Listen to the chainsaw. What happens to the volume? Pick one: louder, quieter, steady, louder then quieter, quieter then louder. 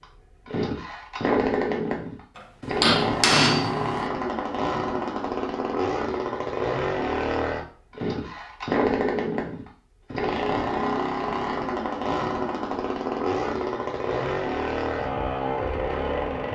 steady.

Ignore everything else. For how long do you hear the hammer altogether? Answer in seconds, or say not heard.
2 s.